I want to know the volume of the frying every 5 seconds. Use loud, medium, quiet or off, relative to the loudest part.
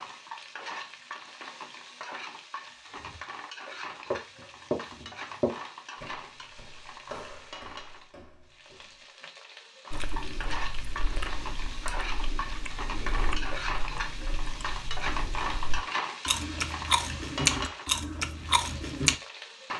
medium, medium, loud, loud.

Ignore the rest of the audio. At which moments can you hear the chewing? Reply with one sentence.
The chewing can be heard from 9.9 to 19.1 s.